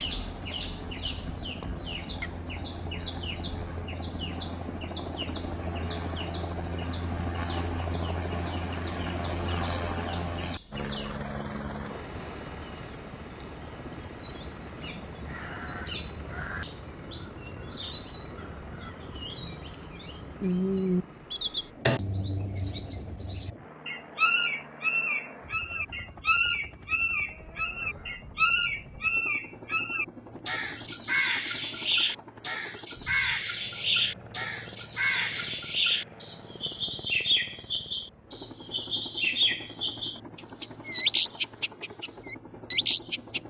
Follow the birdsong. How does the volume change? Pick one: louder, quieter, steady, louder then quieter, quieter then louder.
louder.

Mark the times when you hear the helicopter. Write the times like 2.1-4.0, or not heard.
0.0-43.4.